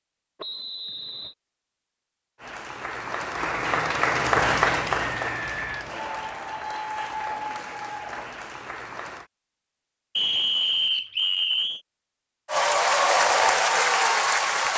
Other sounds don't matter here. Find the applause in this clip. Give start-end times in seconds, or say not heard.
2.4-9.2, 12.4-14.7.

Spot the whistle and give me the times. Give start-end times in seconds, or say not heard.
0.4-1.4, 5.2-6.8, 10.2-11.8.